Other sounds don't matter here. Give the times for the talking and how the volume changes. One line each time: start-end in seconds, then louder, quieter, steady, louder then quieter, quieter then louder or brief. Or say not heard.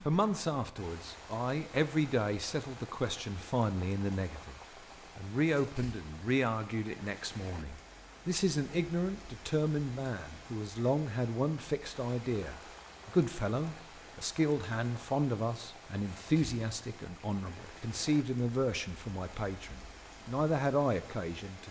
0.0-21.6 steady.